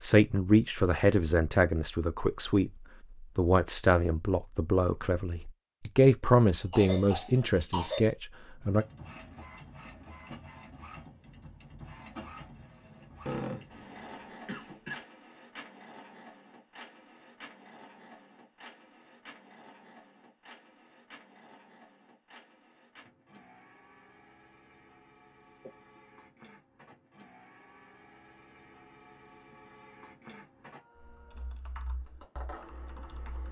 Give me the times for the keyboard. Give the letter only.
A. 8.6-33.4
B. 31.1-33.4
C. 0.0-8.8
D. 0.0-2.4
B.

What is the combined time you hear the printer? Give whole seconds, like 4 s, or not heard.
25 s.